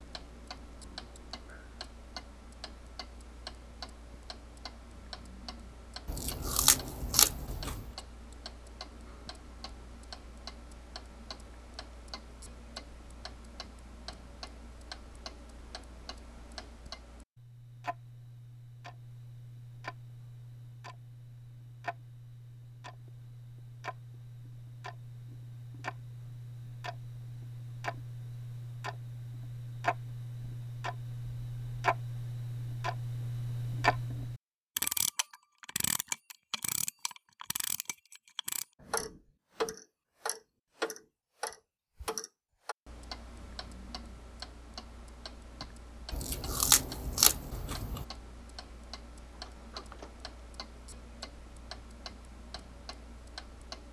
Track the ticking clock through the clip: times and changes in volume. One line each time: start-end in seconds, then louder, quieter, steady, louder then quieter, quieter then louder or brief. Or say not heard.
0.0-53.8 louder then quieter.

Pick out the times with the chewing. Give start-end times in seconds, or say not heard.
6.0-7.9, 46.1-48.0.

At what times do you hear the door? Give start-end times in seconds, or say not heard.
49.3-50.3.